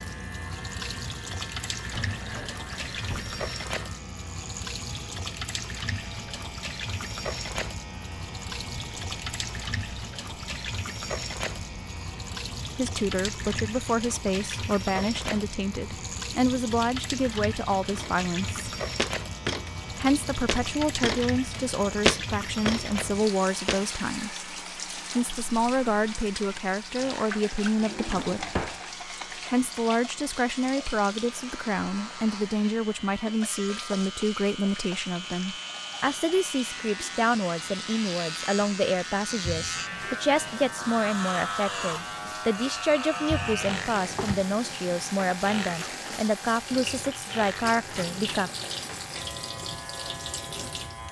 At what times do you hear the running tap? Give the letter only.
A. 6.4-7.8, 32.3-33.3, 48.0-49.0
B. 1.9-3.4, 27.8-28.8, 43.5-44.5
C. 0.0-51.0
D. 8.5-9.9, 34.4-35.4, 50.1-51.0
C.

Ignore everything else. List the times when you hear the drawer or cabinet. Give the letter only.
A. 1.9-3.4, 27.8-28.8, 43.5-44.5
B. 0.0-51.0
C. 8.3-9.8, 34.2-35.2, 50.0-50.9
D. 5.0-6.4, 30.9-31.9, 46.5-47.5
A.